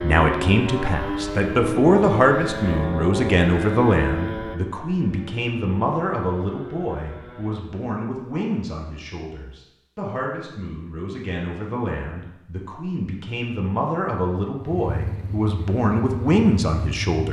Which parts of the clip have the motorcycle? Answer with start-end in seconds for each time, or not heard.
0.0-7.7, 14.6-17.2.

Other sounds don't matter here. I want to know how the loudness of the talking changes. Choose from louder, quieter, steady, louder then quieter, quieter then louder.
quieter then louder.